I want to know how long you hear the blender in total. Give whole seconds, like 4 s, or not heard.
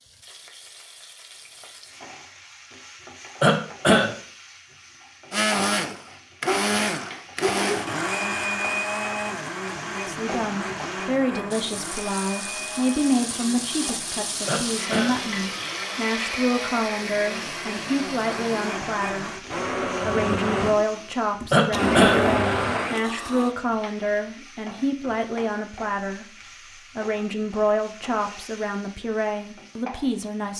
18 s.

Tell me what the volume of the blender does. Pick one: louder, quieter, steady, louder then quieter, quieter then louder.
quieter then louder.